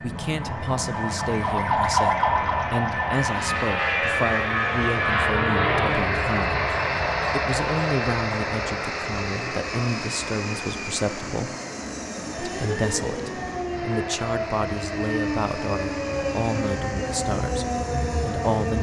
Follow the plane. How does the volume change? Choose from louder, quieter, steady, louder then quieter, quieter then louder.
louder then quieter.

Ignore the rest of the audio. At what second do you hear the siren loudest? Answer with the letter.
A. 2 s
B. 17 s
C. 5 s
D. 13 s
A.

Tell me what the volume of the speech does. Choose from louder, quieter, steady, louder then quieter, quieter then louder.
steady.